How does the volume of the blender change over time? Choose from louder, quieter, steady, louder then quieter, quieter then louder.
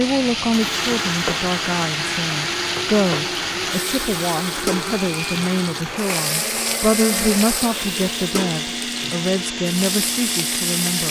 steady.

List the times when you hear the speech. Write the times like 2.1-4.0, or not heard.
0.0-11.0.